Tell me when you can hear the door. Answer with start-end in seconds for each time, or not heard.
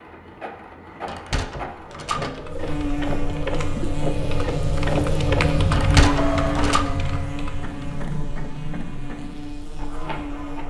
1.1-2.8, 5.7-6.9.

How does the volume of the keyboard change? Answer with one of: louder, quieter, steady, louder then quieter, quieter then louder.
louder then quieter.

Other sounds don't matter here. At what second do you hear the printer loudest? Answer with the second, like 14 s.
5 s.